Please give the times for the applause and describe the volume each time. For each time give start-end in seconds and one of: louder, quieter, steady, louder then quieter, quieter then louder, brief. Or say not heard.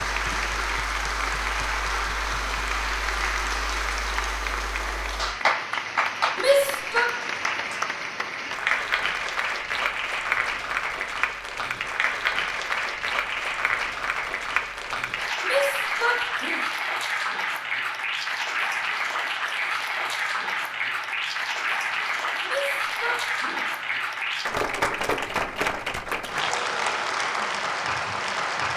0.0-28.7 steady.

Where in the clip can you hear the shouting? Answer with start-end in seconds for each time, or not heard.
6.3-7.1, 15.4-16.6, 22.4-23.6.